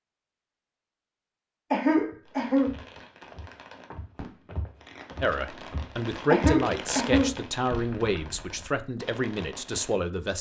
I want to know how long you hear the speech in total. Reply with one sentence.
The speech can be heard for 5 seconds in total.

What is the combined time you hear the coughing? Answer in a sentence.
You can hear the coughing for 2 seconds altogether.